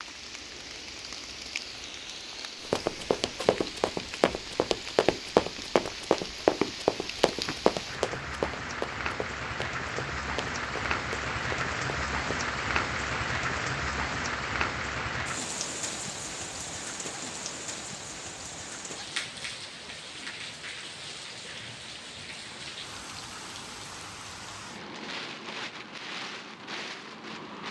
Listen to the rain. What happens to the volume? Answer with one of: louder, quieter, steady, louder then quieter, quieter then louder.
louder then quieter.